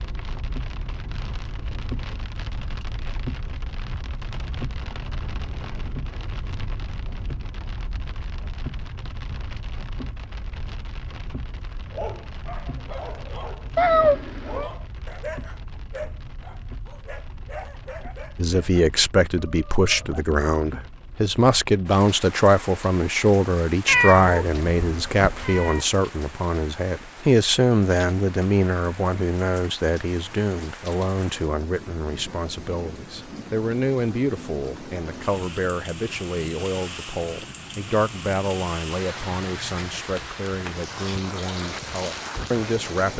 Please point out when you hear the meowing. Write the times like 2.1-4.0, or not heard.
13.8-14.7, 23.9-25.9.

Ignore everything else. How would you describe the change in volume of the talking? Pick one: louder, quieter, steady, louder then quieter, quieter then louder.
quieter.